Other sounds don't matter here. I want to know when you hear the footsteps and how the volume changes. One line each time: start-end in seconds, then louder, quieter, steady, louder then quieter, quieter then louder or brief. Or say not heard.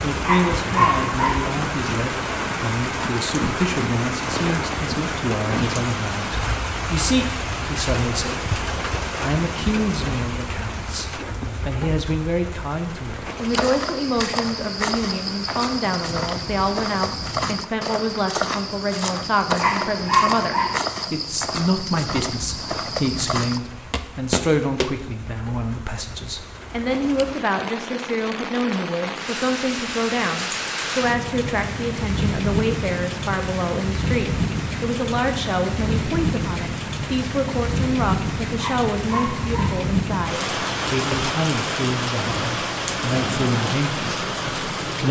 13.4-24.9 steady.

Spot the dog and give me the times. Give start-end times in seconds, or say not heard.
0.2-1.4, 19.6-20.8, 38.5-39.8.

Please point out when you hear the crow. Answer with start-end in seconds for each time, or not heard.
not heard.